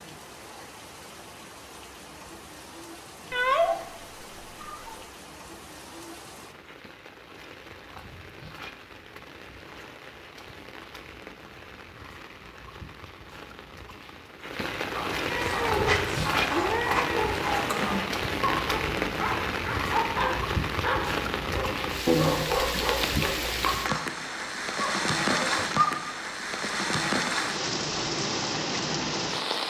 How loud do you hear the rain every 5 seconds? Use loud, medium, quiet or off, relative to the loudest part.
quiet, quiet, quiet, loud, loud, loud.